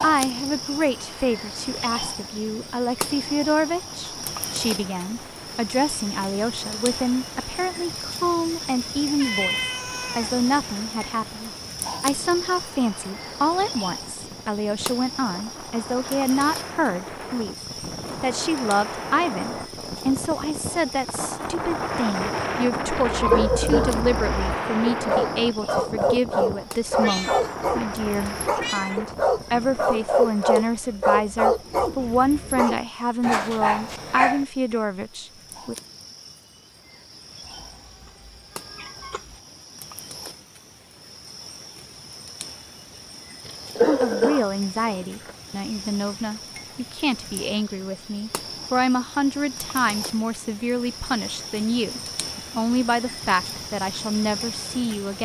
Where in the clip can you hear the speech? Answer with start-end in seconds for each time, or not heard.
0.0-17.6, 18.2-35.8, 43.9-55.2.